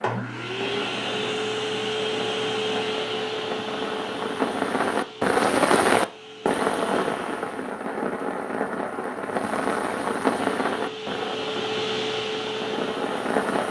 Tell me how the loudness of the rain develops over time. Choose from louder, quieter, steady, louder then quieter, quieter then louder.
louder then quieter.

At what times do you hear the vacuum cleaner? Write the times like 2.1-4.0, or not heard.
0.0-7.8, 10.4-13.6.